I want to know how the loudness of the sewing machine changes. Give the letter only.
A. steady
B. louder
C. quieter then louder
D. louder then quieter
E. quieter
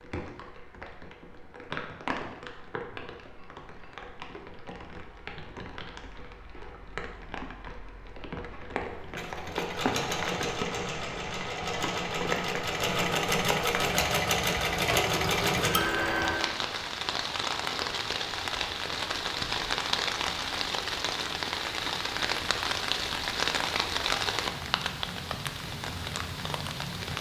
B.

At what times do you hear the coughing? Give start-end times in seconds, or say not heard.
not heard.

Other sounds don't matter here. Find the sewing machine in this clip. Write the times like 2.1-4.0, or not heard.
9.2-16.6.